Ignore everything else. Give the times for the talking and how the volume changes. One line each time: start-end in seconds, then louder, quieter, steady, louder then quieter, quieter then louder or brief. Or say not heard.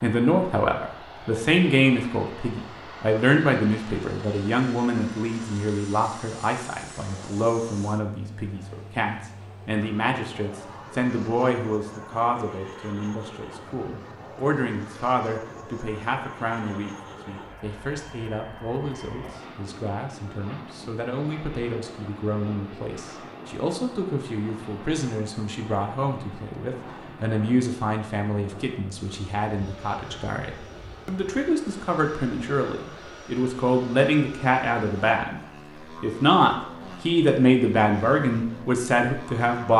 0.0-39.7 quieter then louder.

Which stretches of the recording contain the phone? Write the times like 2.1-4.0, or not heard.
not heard.